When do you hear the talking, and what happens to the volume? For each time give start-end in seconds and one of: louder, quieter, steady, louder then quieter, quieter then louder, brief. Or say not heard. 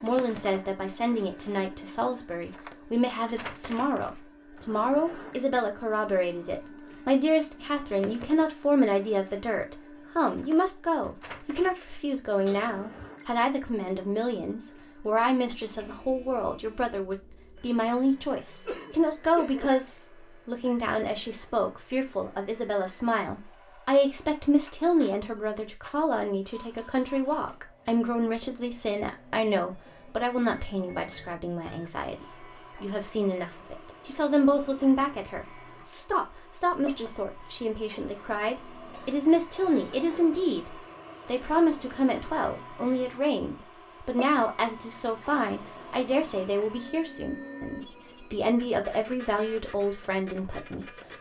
0.0-50.9 steady.